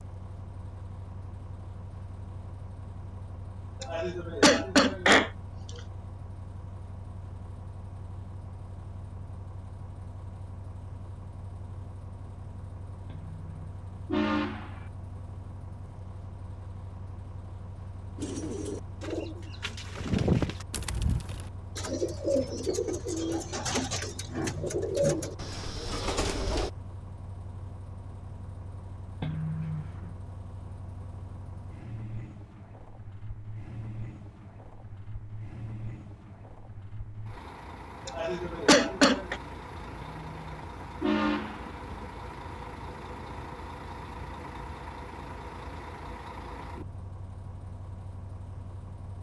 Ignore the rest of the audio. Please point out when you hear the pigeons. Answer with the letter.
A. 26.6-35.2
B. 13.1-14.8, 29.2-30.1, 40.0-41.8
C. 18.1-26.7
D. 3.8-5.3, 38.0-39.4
C.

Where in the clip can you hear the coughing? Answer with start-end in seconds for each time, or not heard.
3.8-5.3, 38.0-39.4.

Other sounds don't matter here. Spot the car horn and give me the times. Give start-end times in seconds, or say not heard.
13.1-14.8, 29.2-30.1, 40.0-41.8.